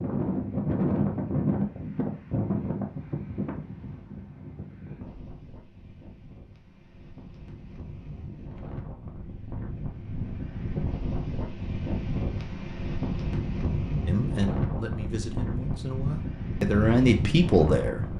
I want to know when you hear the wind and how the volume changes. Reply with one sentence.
You can hear the wind from 0.0 to 18.1 s, getting quieter then louder.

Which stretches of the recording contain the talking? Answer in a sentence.
You can hear the talking from 14.1 to 18.1 s.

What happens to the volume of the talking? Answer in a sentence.
The loudness of the talking goes up.